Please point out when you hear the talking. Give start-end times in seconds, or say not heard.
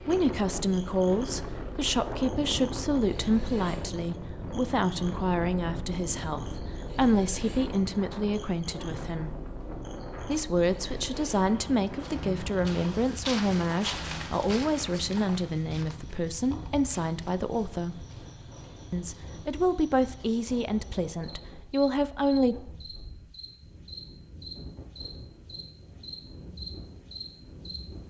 0.0-9.3, 10.2-18.1, 18.9-22.6.